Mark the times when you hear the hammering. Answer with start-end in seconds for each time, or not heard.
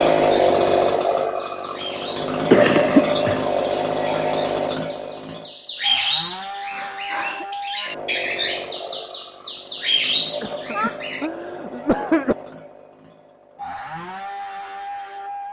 not heard.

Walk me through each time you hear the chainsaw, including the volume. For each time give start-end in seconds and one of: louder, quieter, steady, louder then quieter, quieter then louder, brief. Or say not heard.
0.0-15.4 quieter.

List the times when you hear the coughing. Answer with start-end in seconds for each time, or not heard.
2.5-3.4, 6.7-7.5, 10.4-12.3.